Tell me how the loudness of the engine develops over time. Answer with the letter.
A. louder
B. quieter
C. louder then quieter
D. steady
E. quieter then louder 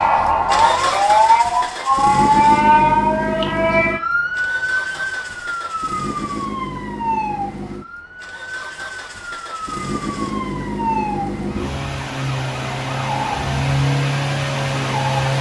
E.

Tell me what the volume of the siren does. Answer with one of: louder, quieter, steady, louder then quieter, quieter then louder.
quieter.